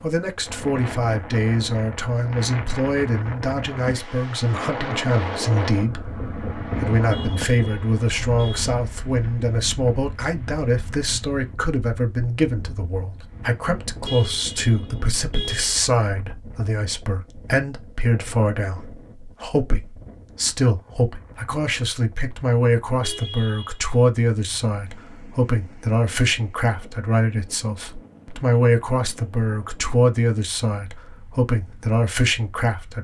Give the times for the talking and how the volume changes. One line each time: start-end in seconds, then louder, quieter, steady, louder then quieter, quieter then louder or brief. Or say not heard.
0.0-32.9 steady.